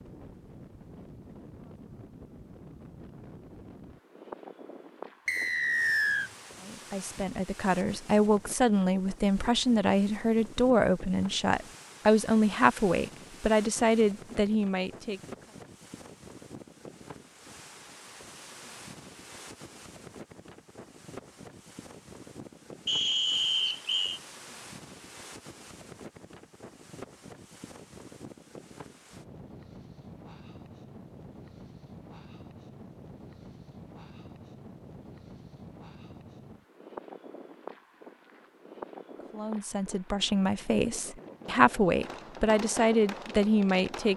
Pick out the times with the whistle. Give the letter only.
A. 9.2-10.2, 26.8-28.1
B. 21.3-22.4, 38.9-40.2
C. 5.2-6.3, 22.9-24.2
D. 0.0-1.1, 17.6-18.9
C.